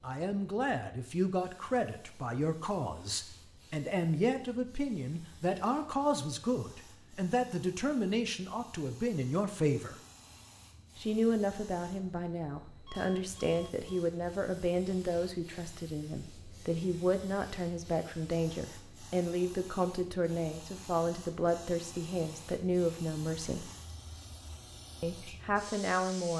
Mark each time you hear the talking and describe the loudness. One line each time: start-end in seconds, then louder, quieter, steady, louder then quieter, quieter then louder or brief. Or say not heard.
0.0-9.9 steady
10.9-23.6 steady
25.0-26.3 brief.